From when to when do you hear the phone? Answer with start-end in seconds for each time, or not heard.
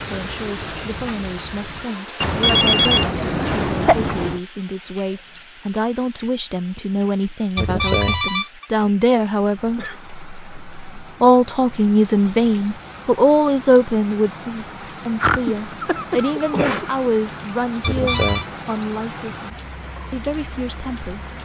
2.2-4.4, 7.5-8.7, 17.8-18.4.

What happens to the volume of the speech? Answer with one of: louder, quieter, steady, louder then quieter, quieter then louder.
louder then quieter.